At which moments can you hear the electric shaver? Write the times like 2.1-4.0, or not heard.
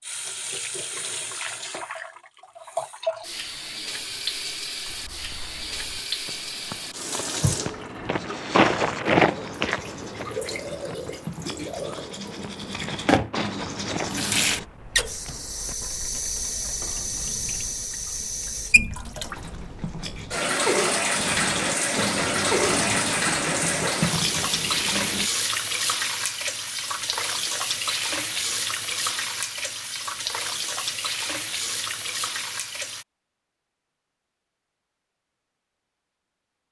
not heard.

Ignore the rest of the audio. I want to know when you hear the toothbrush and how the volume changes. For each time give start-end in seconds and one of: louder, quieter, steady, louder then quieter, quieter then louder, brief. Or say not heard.
7.4-14.7 louder
19.3-25.3 louder.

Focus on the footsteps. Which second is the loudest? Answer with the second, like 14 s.
9 s.